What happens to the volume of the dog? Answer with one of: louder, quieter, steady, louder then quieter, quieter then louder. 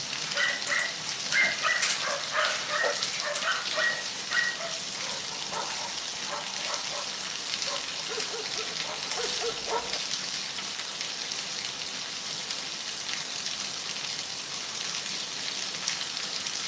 quieter.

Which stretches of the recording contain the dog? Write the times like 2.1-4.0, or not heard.
0.2-10.0.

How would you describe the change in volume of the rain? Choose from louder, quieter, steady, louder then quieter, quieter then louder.
steady.